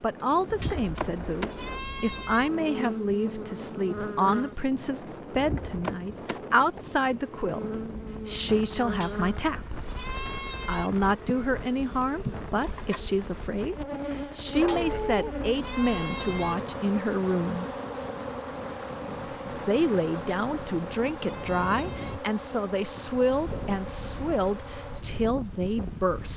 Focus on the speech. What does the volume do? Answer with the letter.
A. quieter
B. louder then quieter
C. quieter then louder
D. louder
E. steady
E.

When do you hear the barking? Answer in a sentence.
The barking can be heard from 14.6 to 15.3 s.